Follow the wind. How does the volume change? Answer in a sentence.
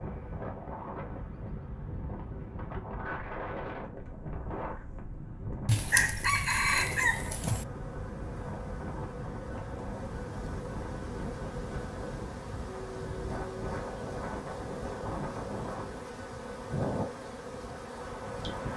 The volume of the wind stays about the same.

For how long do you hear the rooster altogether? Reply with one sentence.
The rooster can be heard for 2 seconds in total.